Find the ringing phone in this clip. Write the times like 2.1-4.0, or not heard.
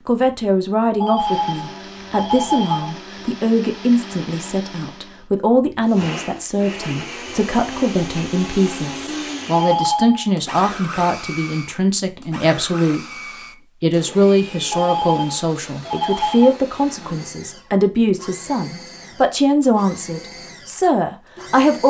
1.0-3.0, 9.5-10.3, 14.7-16.6.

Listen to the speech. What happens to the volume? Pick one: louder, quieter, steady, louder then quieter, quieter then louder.
steady.